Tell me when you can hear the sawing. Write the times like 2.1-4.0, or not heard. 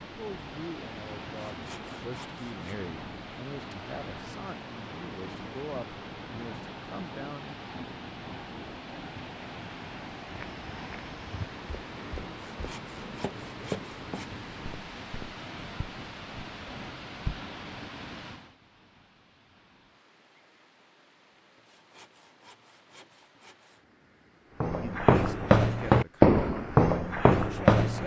1.4-2.7, 12.3-14.3, 21.6-23.9.